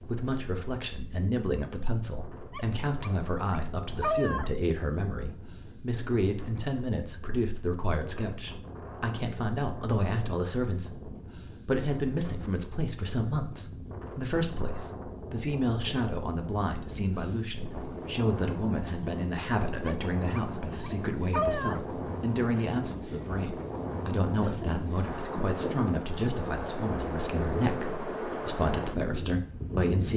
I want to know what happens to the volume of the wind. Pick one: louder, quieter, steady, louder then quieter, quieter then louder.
louder.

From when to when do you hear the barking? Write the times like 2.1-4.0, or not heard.
2.5-4.5, 19.9-21.8.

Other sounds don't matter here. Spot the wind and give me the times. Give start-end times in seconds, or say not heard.
0.0-30.1.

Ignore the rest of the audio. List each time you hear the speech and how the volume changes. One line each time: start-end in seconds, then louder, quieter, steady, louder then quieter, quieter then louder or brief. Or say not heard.
0.0-30.1 steady.